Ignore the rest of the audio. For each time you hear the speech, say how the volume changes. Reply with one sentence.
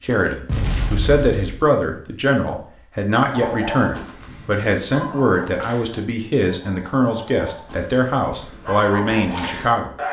You can hear the speech from 0.0 to 9.9 s, at a steady volume.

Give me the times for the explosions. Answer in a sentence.
The explosions can be heard from 0.5 to 1.6 s.